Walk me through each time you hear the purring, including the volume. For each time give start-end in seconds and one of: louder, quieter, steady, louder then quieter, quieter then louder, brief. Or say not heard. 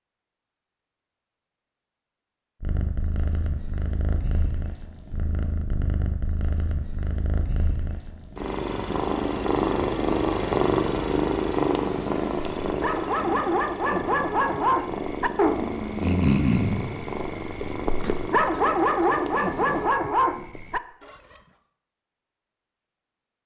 2.6-19.9 louder then quieter.